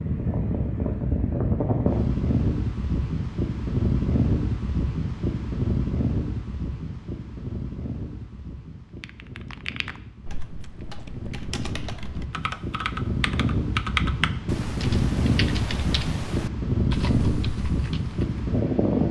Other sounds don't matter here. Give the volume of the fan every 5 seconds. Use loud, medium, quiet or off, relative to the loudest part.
loud, medium, medium, loud.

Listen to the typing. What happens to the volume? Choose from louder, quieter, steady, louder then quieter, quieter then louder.
louder then quieter.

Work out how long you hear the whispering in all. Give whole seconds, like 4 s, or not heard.
not heard.